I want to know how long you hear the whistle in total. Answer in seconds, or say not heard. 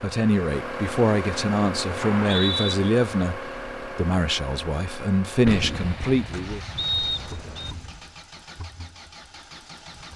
2 s.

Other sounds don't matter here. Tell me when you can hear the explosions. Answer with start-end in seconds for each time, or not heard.
5.5-8.0.